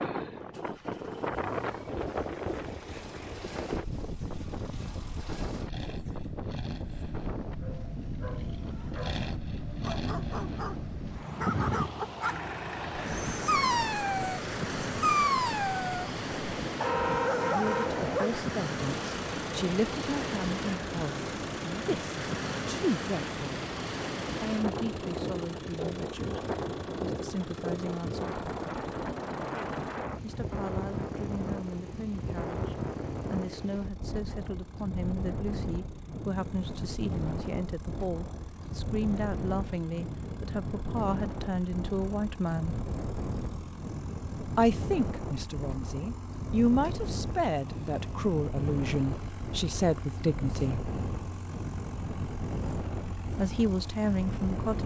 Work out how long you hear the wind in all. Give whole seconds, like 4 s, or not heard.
55 s.